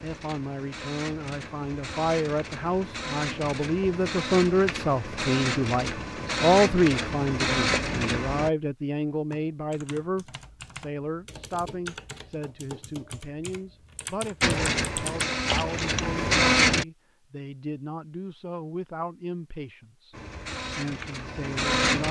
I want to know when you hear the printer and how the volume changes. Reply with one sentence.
The printer can be heard from 0.0 to 8.5 s, getting louder; briefly from 14.4 to 16.9 s; and briefly from 20.1 to 22.0 s.